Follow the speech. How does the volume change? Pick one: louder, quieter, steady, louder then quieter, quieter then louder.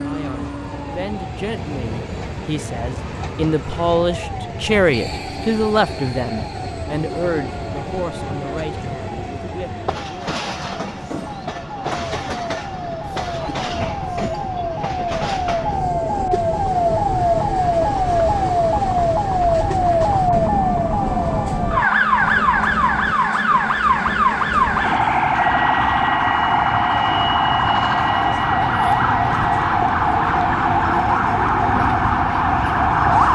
louder then quieter.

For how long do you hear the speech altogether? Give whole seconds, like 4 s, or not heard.
10 s.